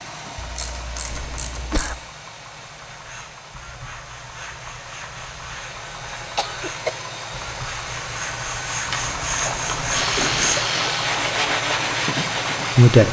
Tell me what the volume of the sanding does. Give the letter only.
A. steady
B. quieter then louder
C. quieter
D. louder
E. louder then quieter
D.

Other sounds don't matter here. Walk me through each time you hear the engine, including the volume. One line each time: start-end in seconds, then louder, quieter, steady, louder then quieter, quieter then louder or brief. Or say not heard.
0.0-13.0 louder.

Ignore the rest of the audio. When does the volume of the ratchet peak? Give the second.
10 s.